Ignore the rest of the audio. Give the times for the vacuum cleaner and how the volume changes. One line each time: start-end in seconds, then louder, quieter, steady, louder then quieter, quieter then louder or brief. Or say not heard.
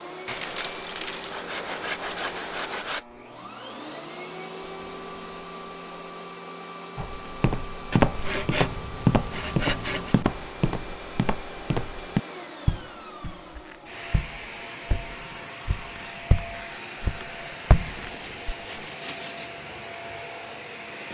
0.0-21.0 steady.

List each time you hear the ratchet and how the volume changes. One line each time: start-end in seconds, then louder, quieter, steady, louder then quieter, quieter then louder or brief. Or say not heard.
not heard.